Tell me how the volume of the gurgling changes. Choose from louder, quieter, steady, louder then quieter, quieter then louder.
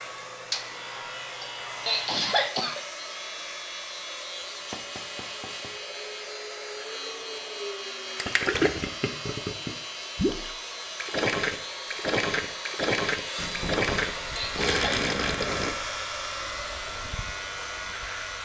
steady.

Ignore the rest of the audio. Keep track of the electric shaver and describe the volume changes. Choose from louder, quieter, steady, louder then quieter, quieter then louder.
steady.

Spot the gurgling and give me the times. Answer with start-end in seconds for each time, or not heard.
8.2-15.8.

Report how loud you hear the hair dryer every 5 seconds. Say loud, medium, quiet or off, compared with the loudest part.
medium, medium, loud, loud.